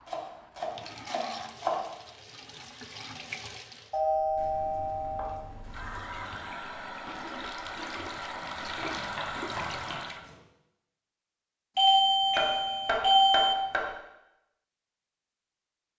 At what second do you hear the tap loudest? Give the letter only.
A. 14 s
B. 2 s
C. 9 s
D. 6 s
C.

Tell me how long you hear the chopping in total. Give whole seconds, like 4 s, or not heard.
7 s.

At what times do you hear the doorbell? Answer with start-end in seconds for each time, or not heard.
3.9-5.4, 11.8-13.6.